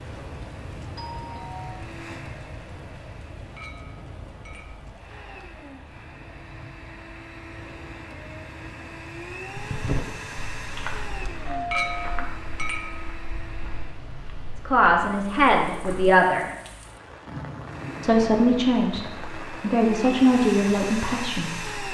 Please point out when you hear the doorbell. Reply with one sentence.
You can hear the doorbell from 0.9 to 1.8 s and from 11.4 to 12.2 s.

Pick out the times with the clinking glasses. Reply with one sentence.
You can hear the clinking glasses from 3.5 to 4.8 s and from 11.7 to 13.1 s.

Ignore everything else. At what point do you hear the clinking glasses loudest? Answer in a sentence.
The loudest moment of the clinking glasses is at 12 seconds.